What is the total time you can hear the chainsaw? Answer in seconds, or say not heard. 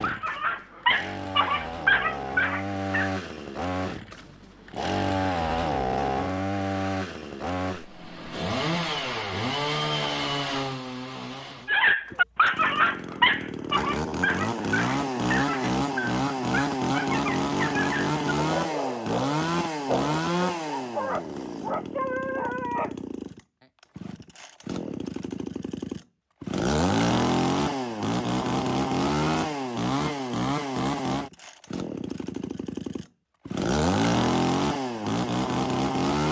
36 s.